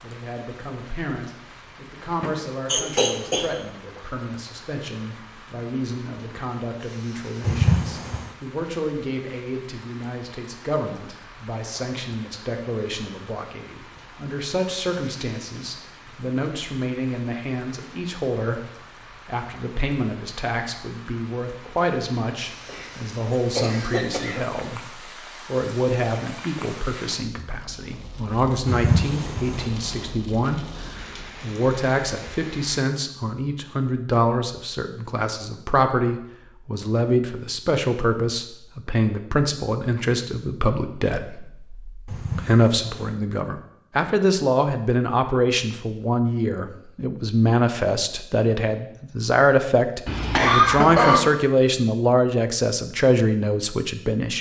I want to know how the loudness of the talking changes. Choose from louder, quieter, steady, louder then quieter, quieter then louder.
louder.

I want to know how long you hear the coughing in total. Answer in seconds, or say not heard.
4 s.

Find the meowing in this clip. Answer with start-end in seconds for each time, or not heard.
7.4-8.2, 28.6-29.7, 42.0-43.1.